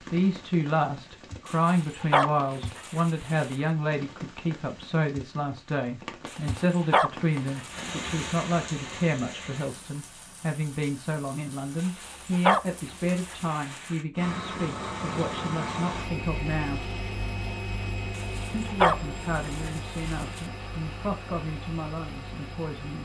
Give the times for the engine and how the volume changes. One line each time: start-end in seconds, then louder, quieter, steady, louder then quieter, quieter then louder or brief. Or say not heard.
14.2-23.0 quieter.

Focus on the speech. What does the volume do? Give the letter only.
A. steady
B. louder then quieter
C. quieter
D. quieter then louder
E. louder
C.